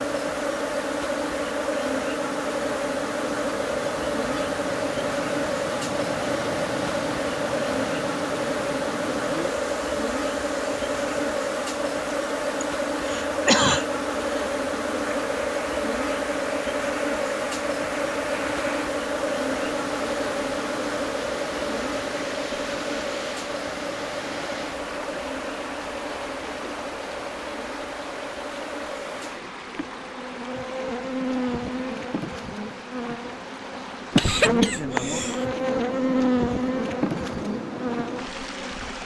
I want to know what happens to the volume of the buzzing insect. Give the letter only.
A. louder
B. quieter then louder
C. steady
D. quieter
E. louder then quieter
B.